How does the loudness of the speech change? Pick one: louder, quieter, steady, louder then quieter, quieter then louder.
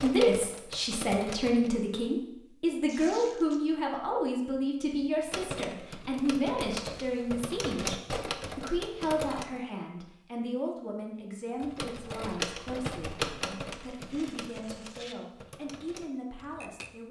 quieter.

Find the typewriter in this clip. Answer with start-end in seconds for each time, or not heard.
0.0-1.7, 5.2-9.6, 11.6-16.9.